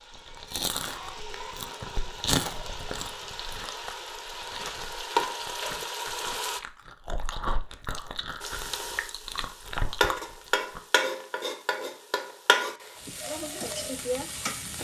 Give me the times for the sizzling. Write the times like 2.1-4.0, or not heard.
0.0-6.6, 8.4-14.7.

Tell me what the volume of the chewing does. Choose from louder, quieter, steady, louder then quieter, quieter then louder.
quieter then louder.